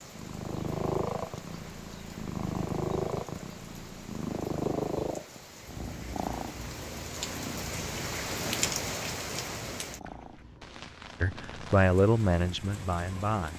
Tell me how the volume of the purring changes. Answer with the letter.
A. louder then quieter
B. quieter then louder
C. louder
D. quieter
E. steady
D.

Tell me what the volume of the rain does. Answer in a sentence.
The loudness of the rain goes up, then down.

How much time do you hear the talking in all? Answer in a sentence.
The talking can be heard for 2 seconds in total.